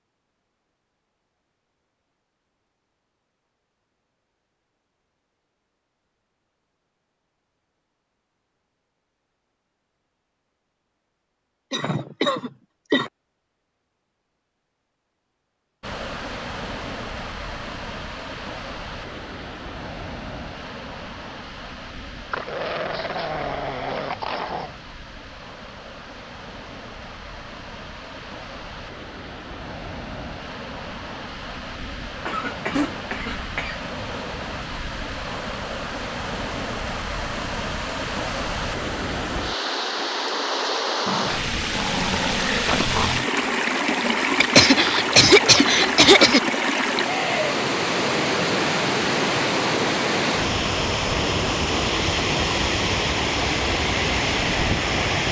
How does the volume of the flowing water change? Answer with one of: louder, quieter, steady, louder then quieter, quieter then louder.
louder.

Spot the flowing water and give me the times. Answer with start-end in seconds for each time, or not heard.
15.8-55.2.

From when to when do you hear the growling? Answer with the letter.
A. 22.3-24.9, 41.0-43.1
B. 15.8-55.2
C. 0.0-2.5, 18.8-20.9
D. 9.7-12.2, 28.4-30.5
A.